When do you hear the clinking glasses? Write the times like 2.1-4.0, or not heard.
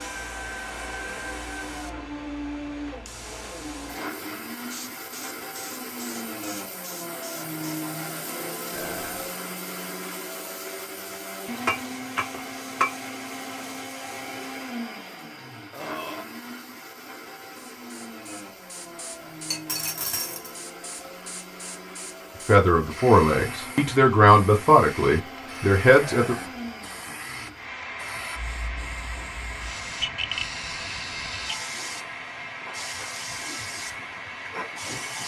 11.7-12.9, 19.5-20.6.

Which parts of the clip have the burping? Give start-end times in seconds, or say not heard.
8.7-9.3, 15.7-16.2, 26.0-26.6.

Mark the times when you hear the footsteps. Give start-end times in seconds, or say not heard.
not heard.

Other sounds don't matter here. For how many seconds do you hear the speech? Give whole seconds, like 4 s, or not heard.
4 s.